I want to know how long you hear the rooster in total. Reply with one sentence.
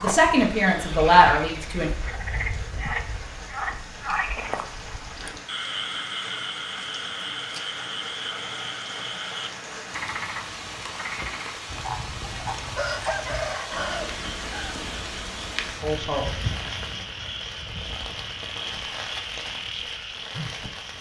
You can hear the rooster for 2 seconds altogether.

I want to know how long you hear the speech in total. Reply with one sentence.
You can hear the speech for 2 seconds altogether.